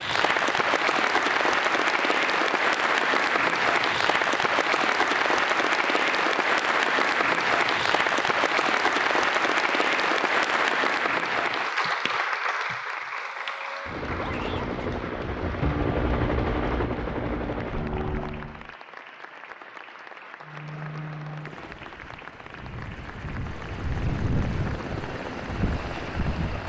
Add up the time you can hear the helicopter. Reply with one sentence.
The helicopter can be heard for 12 seconds in total.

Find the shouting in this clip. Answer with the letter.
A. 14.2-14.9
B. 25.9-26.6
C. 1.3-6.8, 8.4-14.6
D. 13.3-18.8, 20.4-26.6
A.